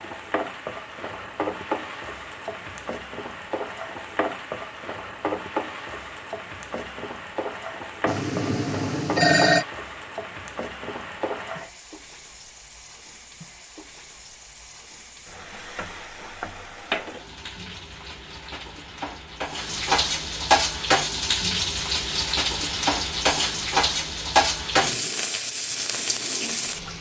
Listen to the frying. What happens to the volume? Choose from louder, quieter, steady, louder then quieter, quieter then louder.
quieter then louder.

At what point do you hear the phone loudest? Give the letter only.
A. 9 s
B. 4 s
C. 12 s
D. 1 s
A.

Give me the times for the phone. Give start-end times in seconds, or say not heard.
8.1-9.7.